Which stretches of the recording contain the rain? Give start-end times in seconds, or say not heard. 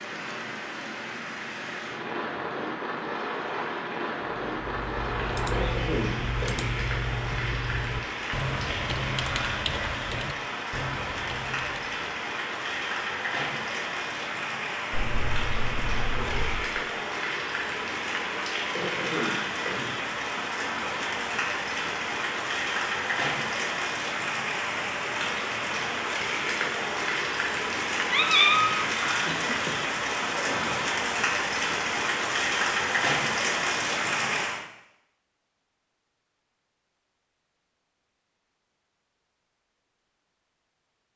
0.0-34.6.